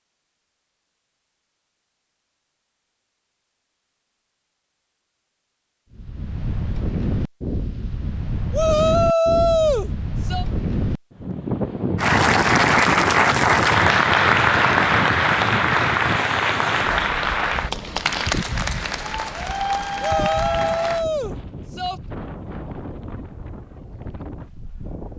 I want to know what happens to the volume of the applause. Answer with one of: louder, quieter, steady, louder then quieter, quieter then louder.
quieter.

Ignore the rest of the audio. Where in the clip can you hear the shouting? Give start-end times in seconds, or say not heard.
8.5-10.4, 20.0-22.0.